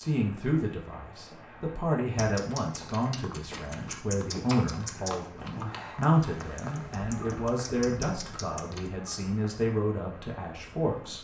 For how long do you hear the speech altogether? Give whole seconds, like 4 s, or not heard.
11 s.